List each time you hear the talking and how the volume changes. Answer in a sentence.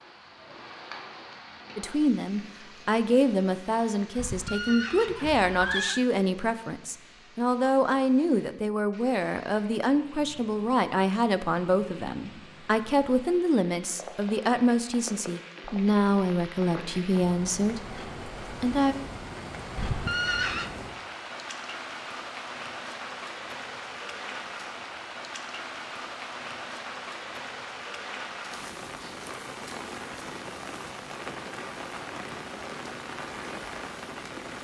The talking can be heard from 1.8 to 18.9 s, at a steady volume.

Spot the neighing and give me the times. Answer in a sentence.
The neighing can be heard from 4.2 to 6.0 s and from 19.8 to 20.8 s.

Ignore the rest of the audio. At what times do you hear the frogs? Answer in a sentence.
You can't hear the frogs here.